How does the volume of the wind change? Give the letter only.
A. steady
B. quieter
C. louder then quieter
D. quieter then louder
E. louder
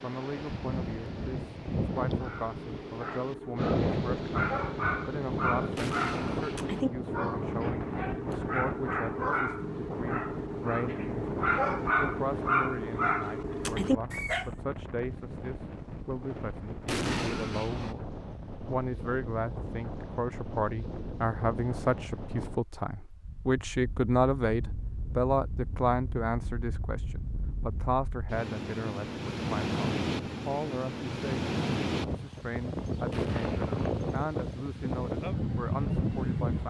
D.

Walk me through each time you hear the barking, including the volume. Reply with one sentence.
You can hear the barking from 2.1 to 14.4 s, getting louder.